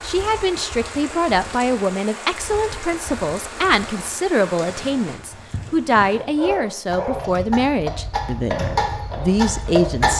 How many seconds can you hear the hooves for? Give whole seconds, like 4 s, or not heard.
10 s.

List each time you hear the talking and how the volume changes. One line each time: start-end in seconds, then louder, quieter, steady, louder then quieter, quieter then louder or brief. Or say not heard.
0.0-10.1 steady.